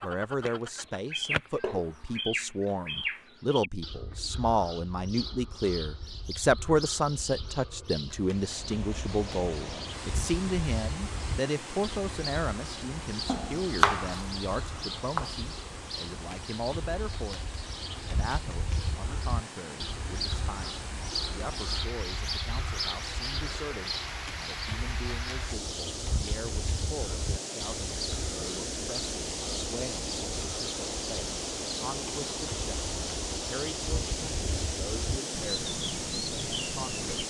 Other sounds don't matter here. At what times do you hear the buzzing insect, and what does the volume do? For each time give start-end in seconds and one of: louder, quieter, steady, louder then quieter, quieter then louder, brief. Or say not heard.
not heard.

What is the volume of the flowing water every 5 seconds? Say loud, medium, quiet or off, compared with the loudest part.
off, medium, medium, medium, medium, loud, loud, loud.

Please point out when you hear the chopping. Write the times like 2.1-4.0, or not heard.
13.2-15.3.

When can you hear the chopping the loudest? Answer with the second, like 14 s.
14 s.